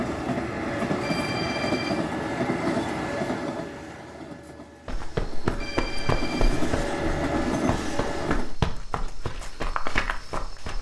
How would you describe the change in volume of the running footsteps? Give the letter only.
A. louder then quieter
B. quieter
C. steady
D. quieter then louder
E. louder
D.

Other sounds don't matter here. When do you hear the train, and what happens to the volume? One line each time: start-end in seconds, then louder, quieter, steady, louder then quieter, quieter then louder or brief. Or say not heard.
0.0-8.6 quieter then louder.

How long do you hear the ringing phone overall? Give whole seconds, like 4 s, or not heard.
2 s.